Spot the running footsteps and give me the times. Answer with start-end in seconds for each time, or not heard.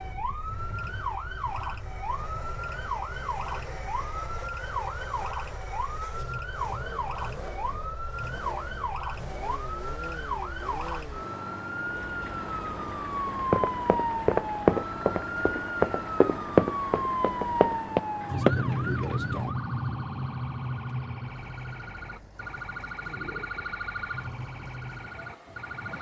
13.3-18.6.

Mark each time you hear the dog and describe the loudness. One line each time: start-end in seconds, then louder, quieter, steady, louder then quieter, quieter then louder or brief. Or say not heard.
not heard.